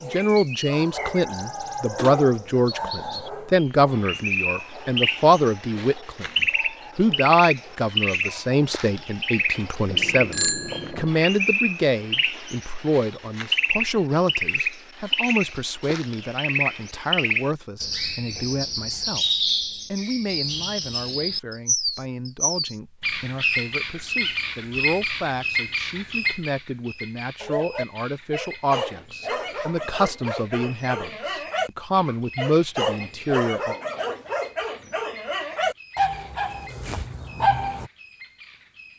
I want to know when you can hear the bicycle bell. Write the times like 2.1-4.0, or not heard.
9.8-11.1.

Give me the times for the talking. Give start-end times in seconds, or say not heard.
0.0-6.2, 7.0-33.8.